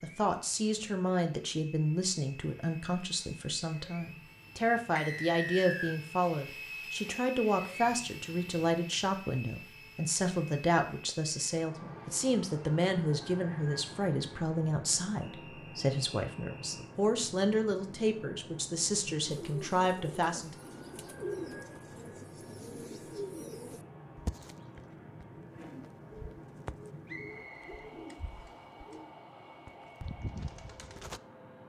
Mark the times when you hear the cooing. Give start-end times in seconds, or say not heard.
19.2-31.2.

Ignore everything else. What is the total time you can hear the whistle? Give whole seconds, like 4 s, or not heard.
4 s.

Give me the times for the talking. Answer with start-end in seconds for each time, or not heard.
0.0-20.7.